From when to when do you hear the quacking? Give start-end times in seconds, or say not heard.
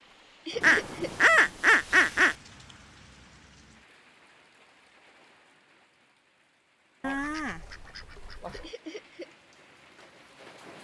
0.6-2.4, 7.0-8.7.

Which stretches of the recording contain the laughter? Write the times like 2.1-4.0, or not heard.
0.5-1.1, 8.6-9.3.